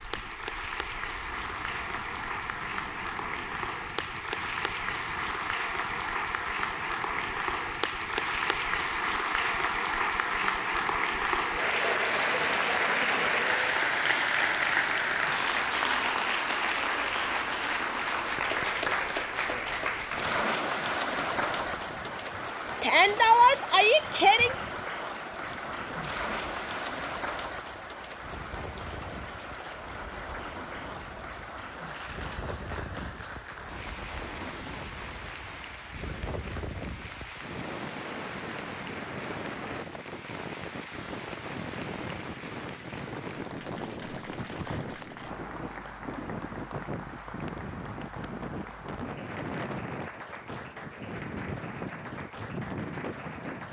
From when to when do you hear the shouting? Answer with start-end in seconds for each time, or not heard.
22.8-24.6.